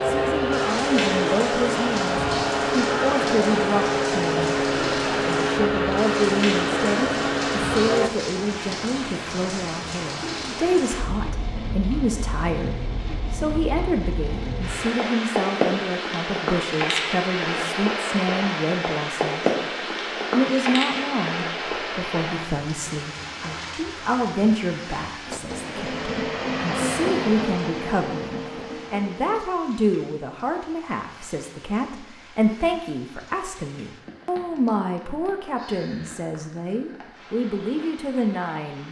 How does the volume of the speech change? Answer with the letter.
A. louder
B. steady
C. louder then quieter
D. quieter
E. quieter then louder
B.